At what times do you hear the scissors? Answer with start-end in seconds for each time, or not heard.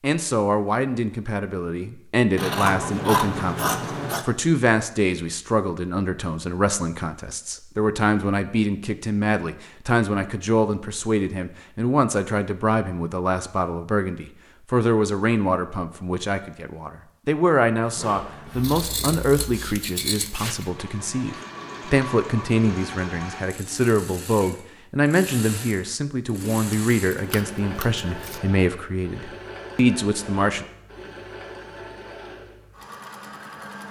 2.4-4.2, 18.5-20.6, 26.4-28.4.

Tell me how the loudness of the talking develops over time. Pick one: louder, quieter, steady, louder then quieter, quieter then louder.
steady.